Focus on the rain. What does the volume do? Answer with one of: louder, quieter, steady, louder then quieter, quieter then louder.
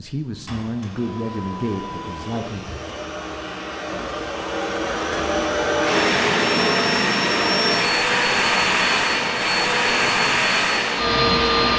steady.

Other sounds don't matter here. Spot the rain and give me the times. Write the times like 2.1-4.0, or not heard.
5.8-11.7.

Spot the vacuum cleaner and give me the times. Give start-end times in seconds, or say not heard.
0.0-11.7.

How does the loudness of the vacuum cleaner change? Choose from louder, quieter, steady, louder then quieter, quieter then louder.
louder.